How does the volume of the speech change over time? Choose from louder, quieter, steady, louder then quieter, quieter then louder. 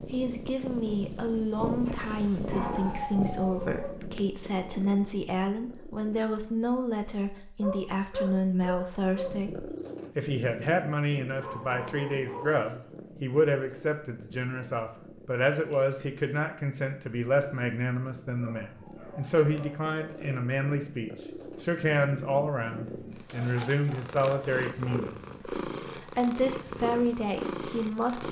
steady.